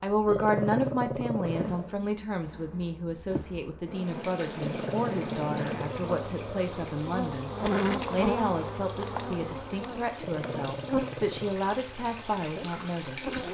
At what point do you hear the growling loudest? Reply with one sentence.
The loudest moment of the growling is at 1 second.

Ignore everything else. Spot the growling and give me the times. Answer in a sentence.
You can hear the growling from 0.2 to 1.9 s, from 4.5 to 6.6 s and from 10.2 to 11.6 s.